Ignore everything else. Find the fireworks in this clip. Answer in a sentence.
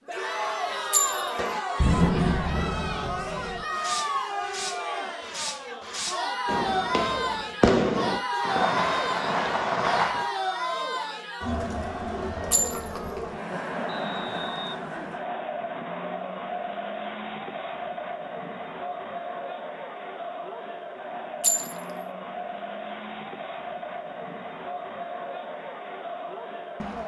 The fireworks can be heard from 1.4 to 10.3 s.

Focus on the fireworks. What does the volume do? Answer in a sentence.
The loudness of the fireworks goes down, then up.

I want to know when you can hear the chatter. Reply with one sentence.
You can hear the chatter from 0.0 to 27.0 s.